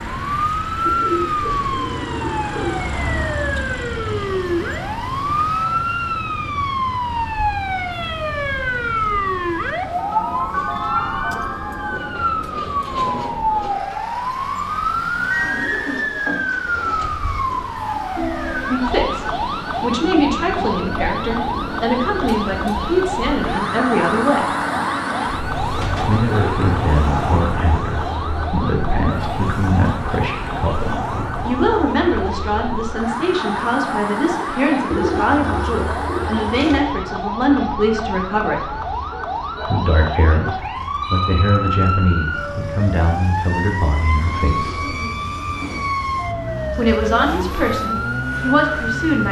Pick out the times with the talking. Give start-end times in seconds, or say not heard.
18.6-24.6, 26.1-38.9, 39.6-44.9, 46.8-49.2.